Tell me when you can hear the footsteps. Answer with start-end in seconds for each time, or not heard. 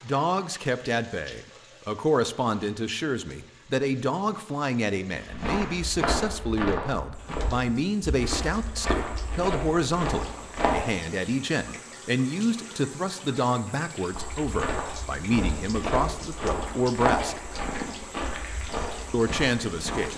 5.2-10.8, 14.1-20.1.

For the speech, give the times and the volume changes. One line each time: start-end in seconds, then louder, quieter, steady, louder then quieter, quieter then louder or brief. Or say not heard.
0.0-17.4 steady
19.1-20.1 brief.